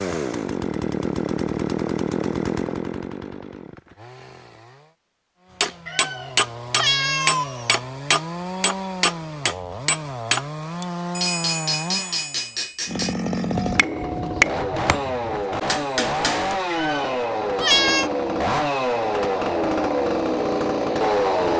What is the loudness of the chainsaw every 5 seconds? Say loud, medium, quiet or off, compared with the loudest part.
medium, quiet, medium, loud, loud.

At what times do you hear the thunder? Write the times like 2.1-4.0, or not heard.
not heard.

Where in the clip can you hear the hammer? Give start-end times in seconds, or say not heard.
5.6-16.6.